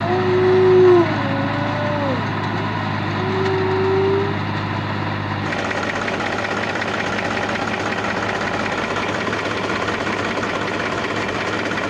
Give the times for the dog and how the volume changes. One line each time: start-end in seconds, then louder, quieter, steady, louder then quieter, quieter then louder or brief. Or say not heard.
0.0-4.3 quieter then louder.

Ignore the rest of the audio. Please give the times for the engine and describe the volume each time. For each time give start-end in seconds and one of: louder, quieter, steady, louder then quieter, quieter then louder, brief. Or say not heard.
0.0-11.8 steady.